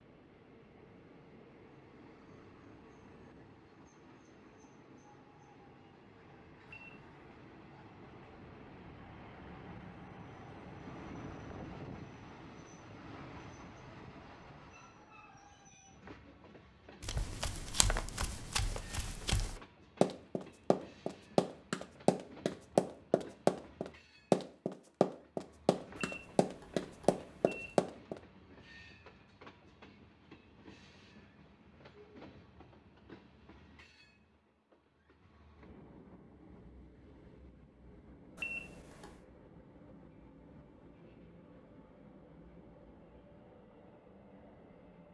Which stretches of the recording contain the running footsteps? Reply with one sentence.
You can hear the running footsteps from 17.0 to 28.2 s.